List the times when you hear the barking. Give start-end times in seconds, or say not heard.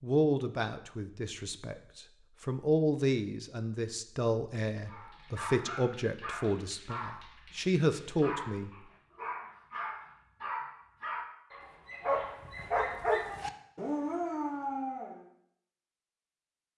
4.8-15.2.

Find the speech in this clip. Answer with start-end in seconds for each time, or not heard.
0.0-8.7.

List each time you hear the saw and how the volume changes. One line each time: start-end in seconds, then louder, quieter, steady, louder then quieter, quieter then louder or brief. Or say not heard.
not heard.